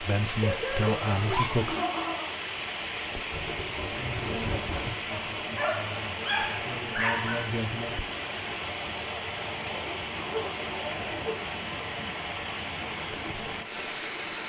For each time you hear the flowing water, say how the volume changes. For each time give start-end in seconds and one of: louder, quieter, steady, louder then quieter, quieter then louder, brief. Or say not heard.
0.0-14.4 steady.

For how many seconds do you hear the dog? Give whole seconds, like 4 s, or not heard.
6 s.